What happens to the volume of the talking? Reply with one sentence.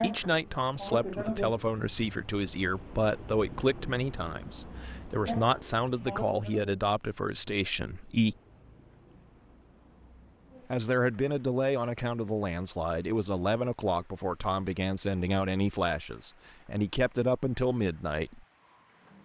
The loudness of the talking stays about the same.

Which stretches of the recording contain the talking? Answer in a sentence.
The talking can be heard from 0.0 to 8.3 s and from 10.7 to 18.4 s.